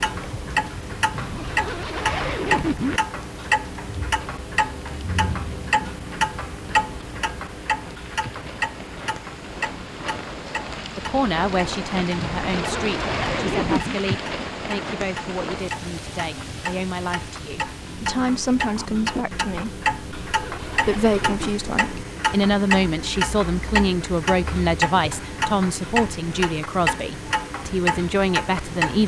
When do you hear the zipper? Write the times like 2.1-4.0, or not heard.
1.1-3.0, 12.2-14.0, 19.9-21.6.